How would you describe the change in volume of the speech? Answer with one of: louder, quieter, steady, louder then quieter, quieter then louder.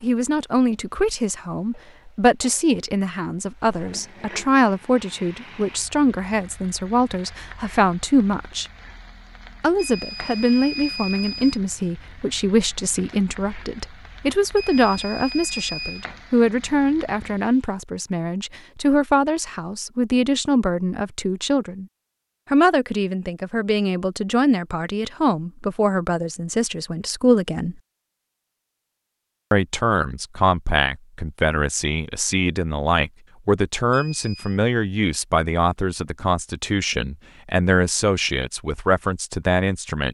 steady.